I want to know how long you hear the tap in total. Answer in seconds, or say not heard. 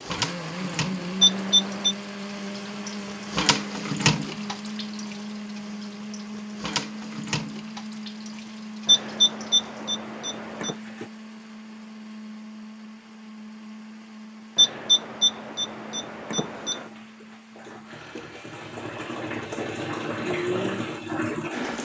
16 s.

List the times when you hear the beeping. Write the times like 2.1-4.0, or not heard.
1.2-1.9, 8.8-10.8, 14.6-16.9.